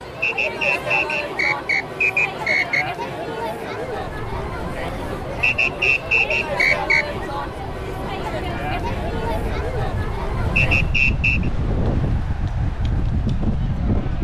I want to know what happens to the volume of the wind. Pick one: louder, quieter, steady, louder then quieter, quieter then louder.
louder.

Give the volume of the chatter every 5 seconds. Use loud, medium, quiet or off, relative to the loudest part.
loud, loud, medium.